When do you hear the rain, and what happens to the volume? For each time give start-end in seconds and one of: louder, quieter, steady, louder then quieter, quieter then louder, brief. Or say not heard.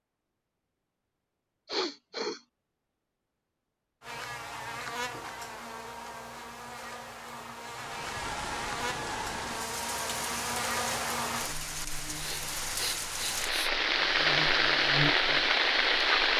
7.7-16.3 louder.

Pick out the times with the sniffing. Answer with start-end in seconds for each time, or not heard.
1.6-2.4, 12.1-13.7.